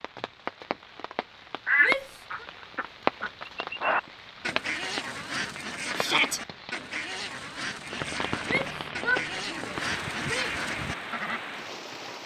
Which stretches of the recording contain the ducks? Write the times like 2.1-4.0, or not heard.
1.6-11.4.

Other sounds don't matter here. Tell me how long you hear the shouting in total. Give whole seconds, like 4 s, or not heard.
3 s.